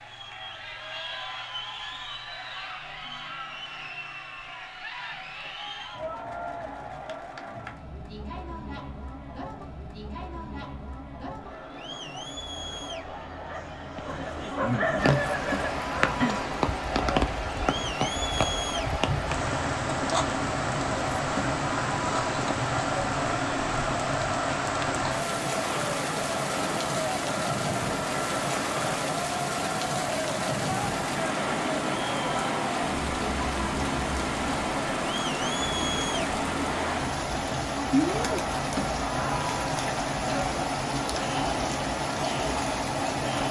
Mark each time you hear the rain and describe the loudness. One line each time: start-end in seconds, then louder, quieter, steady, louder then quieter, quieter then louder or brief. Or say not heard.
14.9-43.4 steady.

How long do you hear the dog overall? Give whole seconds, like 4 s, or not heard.
3 s.